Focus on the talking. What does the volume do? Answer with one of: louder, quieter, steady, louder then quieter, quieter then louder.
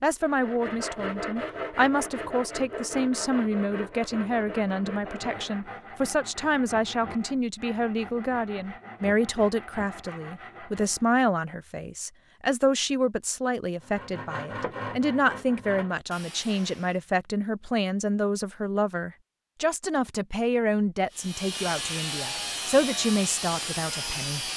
steady.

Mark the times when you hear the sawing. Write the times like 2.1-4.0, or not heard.
0.2-11.2, 13.8-17.0, 21.1-24.5.